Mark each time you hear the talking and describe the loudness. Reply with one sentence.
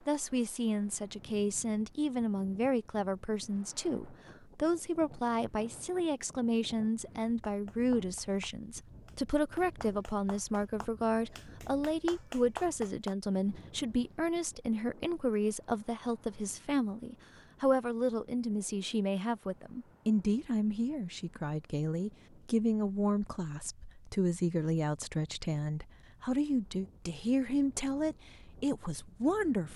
The talking can be heard from 0.1 to 29.7 s, at a steady volume.